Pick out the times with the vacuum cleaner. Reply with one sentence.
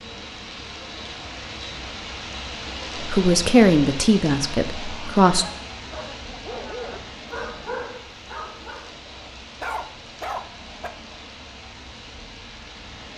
You can't hear the vacuum cleaner here.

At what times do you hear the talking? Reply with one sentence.
You can hear the talking from 3.0 to 5.5 s.